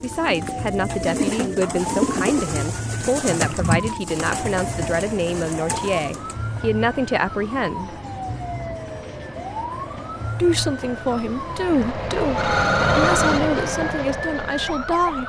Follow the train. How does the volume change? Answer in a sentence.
The volume of the train goes up.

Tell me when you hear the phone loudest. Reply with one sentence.
The loudest moment of the phone is at 13 seconds.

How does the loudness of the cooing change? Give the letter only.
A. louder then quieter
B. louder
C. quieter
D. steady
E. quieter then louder
C.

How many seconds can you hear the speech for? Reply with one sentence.
You can hear the speech for 13 seconds altogether.